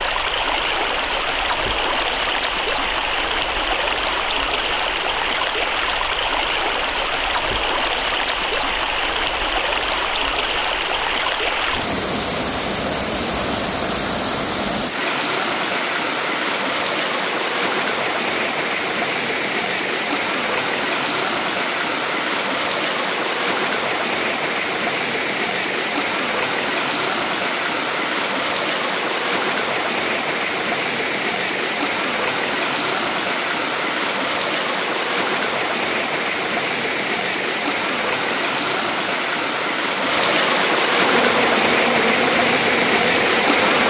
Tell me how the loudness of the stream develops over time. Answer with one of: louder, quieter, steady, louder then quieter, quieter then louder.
steady.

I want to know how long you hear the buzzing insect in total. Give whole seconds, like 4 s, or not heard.
3 s.